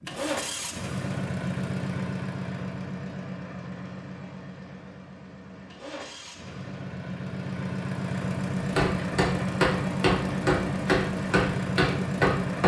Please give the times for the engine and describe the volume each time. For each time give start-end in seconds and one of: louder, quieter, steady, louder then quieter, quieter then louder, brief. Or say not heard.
0.0-12.6 quieter then louder.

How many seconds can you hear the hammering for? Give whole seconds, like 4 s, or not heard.
4 s.